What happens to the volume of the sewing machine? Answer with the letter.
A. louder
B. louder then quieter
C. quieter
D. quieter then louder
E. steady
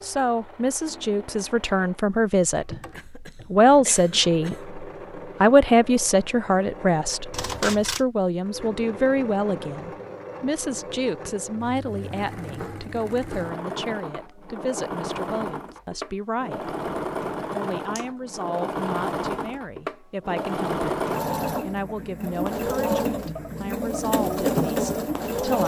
A.